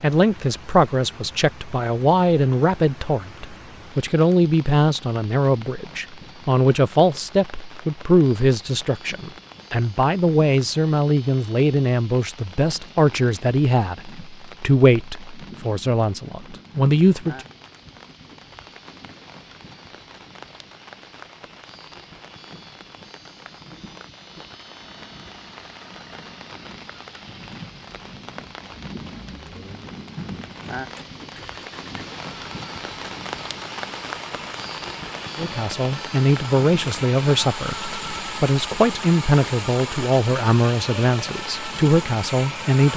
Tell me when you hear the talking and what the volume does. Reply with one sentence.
The talking can be heard from 0.0 to 17.4 s, at a steady volume; and from 35.4 to 42.9 s, at a steady volume.